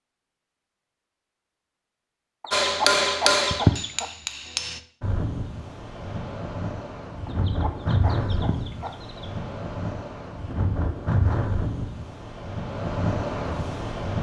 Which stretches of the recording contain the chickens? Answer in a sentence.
You can hear the chickens from 2.4 to 4.1 s and from 7.2 to 9.2 s.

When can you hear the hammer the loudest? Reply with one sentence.
The loudest moment of the hammer is at 3 seconds.